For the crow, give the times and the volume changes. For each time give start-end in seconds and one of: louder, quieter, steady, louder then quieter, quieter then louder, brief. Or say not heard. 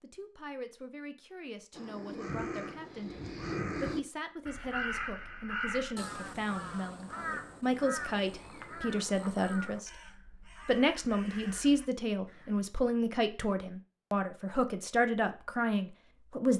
1.7-12.6 quieter.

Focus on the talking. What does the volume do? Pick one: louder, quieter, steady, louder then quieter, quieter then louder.
louder.